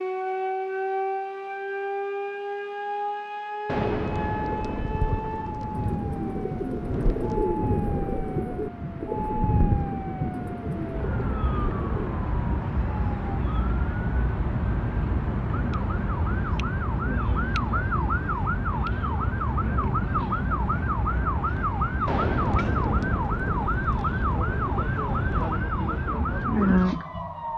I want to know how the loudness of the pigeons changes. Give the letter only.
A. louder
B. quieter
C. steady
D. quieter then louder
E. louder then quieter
E.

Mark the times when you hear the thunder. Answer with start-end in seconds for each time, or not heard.
3.6-7.4, 22.1-25.5.